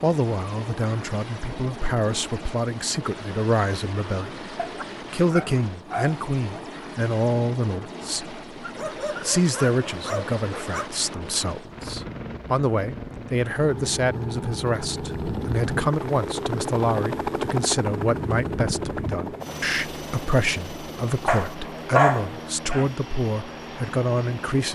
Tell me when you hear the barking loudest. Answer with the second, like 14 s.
22 s.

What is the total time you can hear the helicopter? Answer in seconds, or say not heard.
25 s.